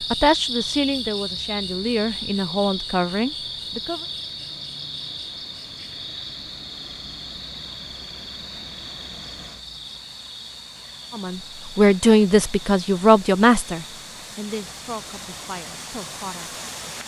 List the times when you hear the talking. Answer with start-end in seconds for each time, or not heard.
0.0-4.0, 11.1-16.6.